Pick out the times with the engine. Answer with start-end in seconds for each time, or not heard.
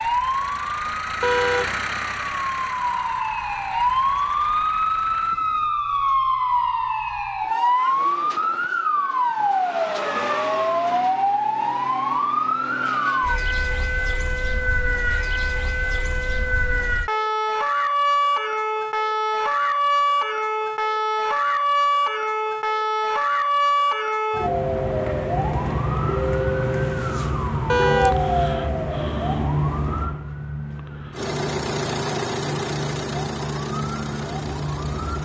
0.0-5.8, 31.1-35.1.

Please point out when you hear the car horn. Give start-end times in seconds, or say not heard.
1.2-1.8, 27.6-28.2.